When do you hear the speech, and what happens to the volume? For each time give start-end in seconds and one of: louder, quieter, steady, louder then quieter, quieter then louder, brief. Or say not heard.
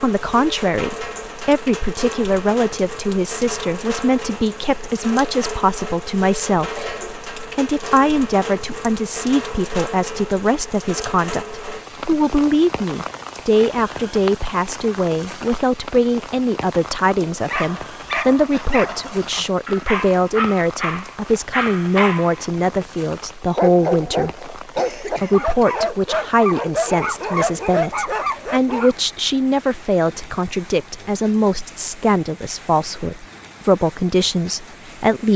0.0-35.3 steady.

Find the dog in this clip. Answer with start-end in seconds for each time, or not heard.
17.1-22.8, 23.6-28.9.